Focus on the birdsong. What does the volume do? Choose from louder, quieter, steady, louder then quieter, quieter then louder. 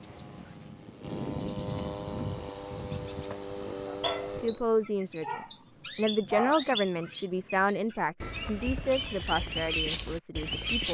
louder.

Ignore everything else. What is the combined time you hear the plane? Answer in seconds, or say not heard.
5 s.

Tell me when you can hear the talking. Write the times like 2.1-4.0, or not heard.
3.9-10.8.